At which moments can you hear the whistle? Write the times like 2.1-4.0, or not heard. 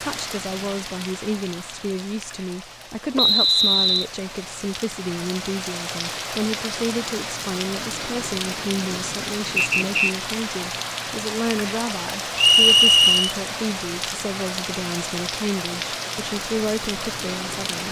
3.1-4.0, 9.6-10.1, 12.3-13.3.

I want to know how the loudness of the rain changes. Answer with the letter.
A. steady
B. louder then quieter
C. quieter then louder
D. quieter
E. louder
E.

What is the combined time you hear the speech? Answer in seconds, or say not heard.
18 s.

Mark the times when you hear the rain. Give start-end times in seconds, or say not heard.
0.0-17.8.